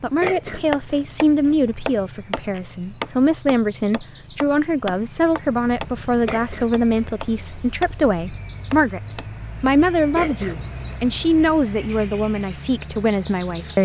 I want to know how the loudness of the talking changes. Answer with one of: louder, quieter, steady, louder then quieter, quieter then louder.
steady.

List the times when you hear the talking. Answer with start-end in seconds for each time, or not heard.
0.0-13.8.